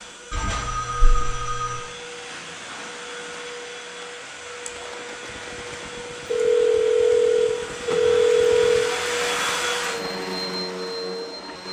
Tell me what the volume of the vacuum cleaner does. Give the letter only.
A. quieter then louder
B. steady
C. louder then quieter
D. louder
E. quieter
D.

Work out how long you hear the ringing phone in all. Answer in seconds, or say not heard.
4 s.